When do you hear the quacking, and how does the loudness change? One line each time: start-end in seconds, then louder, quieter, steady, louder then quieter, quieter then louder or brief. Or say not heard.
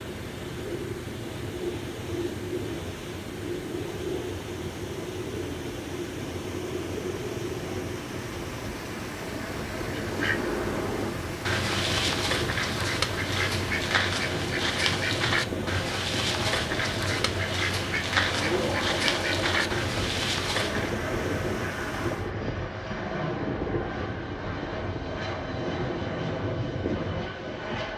9.9-20.9 steady.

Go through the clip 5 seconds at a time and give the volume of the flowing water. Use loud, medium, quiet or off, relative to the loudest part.
loud, loud, loud, loud, loud, off.